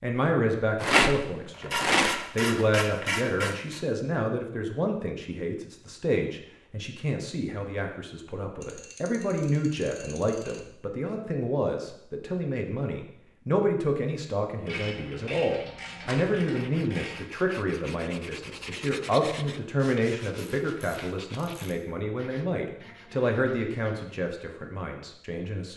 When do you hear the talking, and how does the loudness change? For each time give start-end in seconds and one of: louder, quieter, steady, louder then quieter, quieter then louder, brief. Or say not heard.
0.0-25.7 steady.